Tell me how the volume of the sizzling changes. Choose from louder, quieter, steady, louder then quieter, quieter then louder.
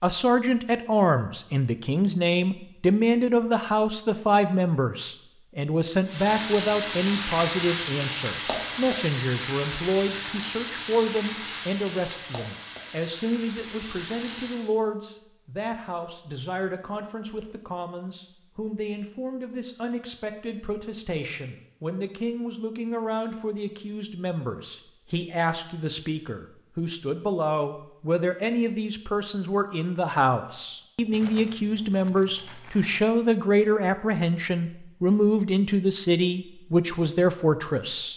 quieter.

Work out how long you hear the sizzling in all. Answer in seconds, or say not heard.
9 s.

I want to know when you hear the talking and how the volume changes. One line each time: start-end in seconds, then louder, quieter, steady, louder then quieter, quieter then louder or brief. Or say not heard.
0.0-38.1 quieter then louder.